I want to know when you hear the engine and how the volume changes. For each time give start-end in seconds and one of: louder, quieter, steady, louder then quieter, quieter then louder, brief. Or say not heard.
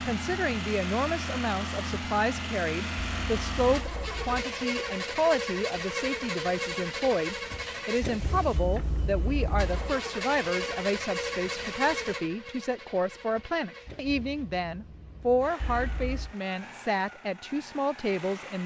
0.0-18.6 quieter.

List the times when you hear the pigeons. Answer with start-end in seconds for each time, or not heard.
not heard.